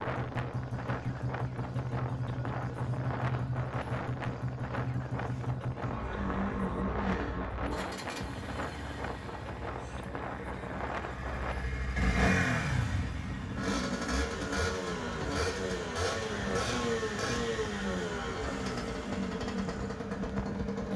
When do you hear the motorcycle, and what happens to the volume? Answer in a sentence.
The motorcycle can be heard from 0.0 to 20.9 s, at a steady volume.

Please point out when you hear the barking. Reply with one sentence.
The barking can't be heard in this clip.